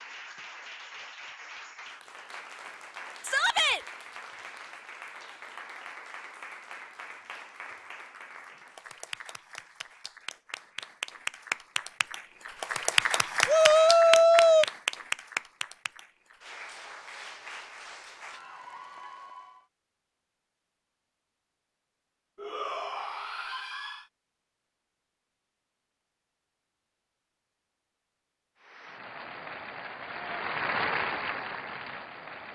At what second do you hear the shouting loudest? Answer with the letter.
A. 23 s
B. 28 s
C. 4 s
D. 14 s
D.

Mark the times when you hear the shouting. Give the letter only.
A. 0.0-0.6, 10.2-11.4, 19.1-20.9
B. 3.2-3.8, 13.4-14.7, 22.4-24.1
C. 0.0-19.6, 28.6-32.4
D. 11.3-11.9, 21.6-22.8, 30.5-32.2
B.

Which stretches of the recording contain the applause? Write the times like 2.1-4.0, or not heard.
0.0-19.6, 28.6-32.4.